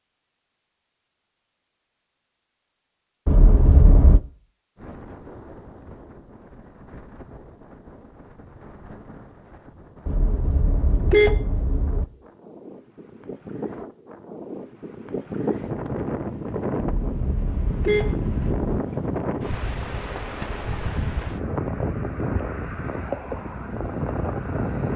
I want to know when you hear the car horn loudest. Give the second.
11 s.